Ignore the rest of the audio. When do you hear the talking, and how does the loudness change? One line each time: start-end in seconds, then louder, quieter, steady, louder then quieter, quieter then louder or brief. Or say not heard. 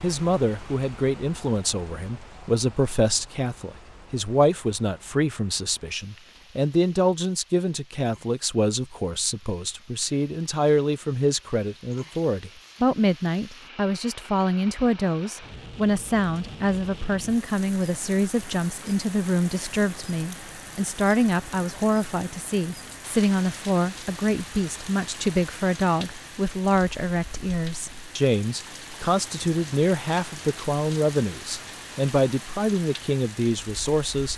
0.0-34.3 steady.